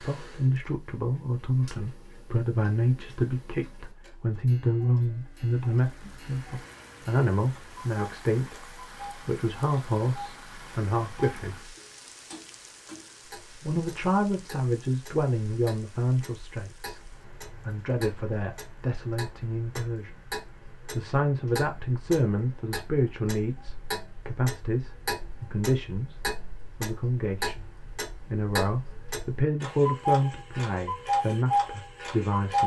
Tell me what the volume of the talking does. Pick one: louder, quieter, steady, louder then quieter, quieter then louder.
steady.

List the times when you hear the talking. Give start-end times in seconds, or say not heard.
0.0-11.8, 13.6-20.1, 20.9-27.6, 28.2-32.6.